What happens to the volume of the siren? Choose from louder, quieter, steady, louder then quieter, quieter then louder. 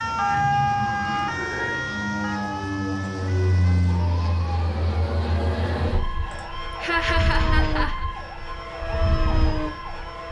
quieter.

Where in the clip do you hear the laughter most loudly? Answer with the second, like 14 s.
7 s.